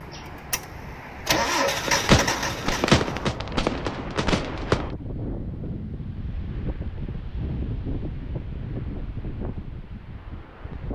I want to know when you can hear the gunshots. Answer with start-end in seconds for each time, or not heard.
1.9-4.9.